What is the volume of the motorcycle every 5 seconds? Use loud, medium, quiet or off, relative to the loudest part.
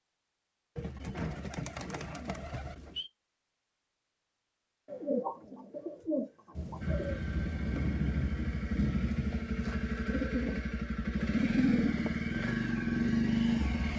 off, medium, loud.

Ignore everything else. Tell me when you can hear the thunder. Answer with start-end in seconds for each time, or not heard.
6.5-10.3.